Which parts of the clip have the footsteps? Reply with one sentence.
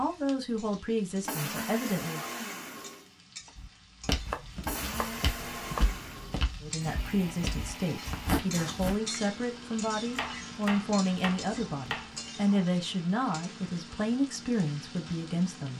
The footsteps can be heard from 3.5 to 8.9 s.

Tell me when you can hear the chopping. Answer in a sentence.
The chopping can be heard from 4.0 to 6.0 s and from 10.1 to 12.3 s.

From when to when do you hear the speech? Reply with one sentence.
The speech can be heard from 0.0 to 2.2 s and from 6.6 to 15.7 s.